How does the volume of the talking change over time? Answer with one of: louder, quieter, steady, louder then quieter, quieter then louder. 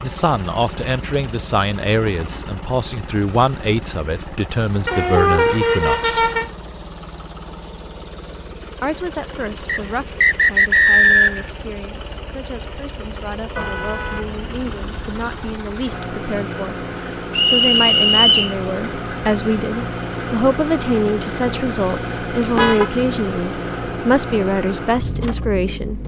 quieter then louder.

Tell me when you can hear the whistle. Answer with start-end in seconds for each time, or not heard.
9.7-11.5, 17.4-18.6.